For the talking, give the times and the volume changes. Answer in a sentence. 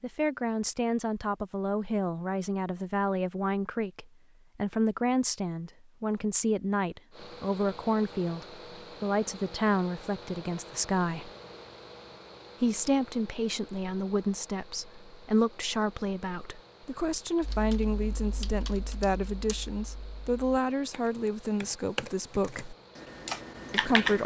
The talking can be heard from 0.0 to 11.3 s, at a steady volume; from 12.6 to 22.8 s, at a steady volume; and briefly from 23.7 to 24.2 s.